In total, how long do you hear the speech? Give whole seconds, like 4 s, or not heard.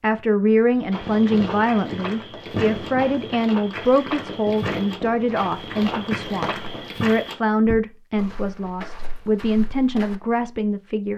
11 s.